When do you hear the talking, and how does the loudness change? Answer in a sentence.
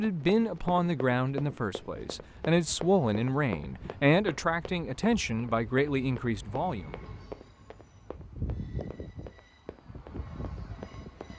You can hear the talking from 0.0 to 6.9 s, at a steady volume.